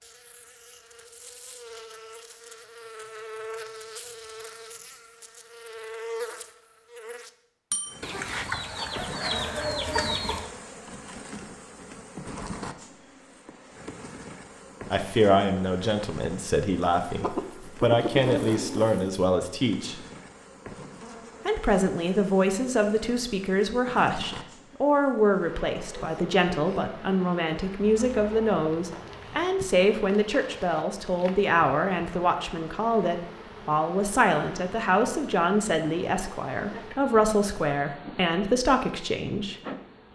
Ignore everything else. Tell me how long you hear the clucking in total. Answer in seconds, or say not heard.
6 s.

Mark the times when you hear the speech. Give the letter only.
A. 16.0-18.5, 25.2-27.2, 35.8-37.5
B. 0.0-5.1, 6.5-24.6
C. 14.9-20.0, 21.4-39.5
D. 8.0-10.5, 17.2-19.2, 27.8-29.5
C.